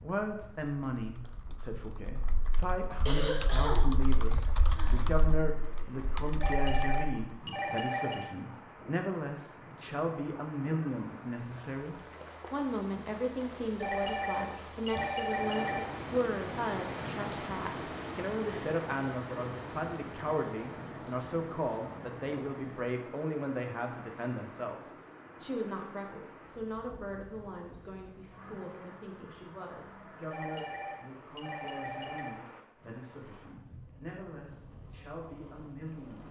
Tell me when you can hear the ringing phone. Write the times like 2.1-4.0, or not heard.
6.4-8.3, 13.8-15.8, 30.3-32.3.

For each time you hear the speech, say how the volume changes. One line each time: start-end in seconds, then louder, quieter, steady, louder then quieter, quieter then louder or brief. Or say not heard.
0.0-36.2 quieter.